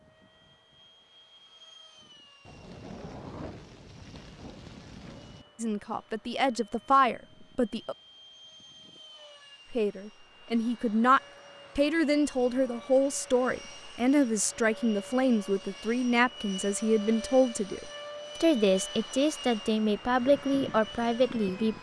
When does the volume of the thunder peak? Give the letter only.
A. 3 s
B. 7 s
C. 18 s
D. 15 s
A.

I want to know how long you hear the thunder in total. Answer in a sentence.
The thunder can be heard for 3 seconds in total.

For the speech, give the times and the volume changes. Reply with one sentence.
The speech can be heard briefly from 5.6 to 8.0 s; and from 9.7 to 21.7 s, at a steady volume.